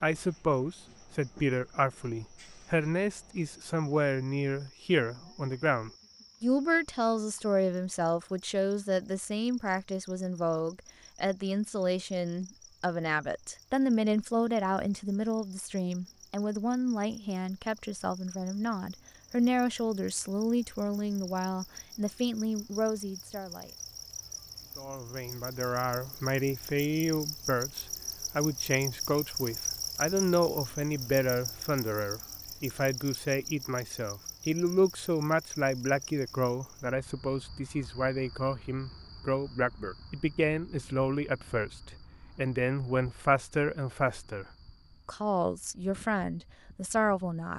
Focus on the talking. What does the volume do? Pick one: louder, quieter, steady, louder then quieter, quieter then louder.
steady.